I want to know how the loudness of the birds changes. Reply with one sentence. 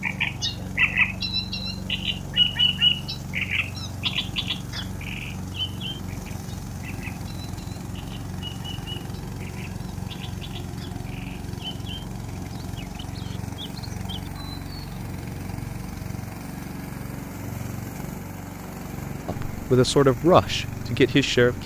The volume of the birds goes down.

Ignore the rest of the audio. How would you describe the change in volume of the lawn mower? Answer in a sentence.
The loudness of the lawn mower stays about the same.